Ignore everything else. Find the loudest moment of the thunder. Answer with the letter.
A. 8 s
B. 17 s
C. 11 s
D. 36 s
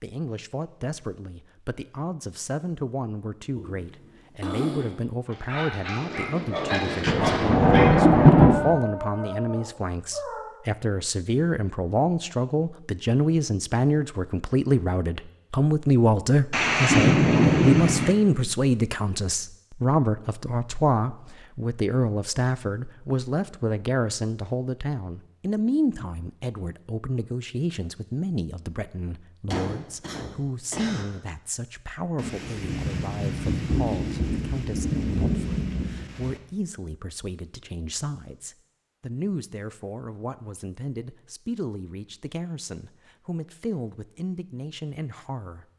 A.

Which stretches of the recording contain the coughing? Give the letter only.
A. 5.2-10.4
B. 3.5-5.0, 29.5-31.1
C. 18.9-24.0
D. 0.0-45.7
B.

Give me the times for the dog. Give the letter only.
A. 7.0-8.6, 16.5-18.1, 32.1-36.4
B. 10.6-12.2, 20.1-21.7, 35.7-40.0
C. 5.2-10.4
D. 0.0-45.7
C.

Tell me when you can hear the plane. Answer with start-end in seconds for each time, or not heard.
not heard.